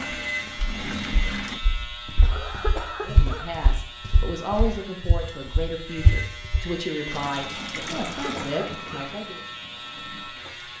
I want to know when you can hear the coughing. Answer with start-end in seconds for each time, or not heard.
2.2-3.5, 7.8-9.1.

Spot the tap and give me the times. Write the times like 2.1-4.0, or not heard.
0.0-1.6, 7.1-10.7.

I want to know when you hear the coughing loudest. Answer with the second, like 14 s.
3 s.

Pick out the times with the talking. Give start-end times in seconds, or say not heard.
3.0-9.4.